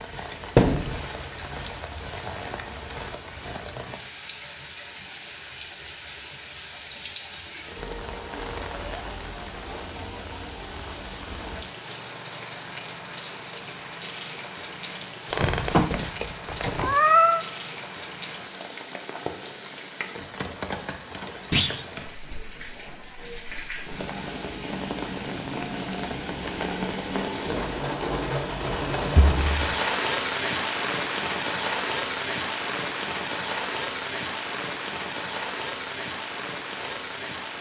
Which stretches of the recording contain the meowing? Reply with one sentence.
You can hear the meowing from 15.3 to 17.4 s.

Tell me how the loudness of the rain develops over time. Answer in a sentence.
The volume of the rain goes up.